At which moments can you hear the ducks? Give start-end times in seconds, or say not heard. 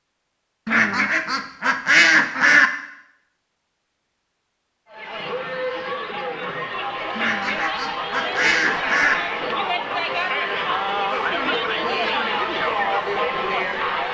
0.7-2.7, 7.2-9.2.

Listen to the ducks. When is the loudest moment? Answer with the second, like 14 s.
2 s.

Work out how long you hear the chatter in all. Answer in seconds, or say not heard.
9 s.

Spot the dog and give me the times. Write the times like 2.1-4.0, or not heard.
not heard.